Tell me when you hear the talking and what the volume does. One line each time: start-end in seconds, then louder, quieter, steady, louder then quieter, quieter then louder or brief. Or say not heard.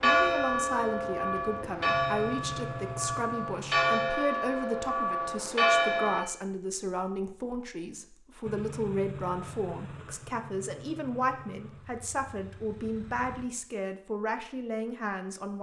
0.0-15.5 steady.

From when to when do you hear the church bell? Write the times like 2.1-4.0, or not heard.
0.0-6.2.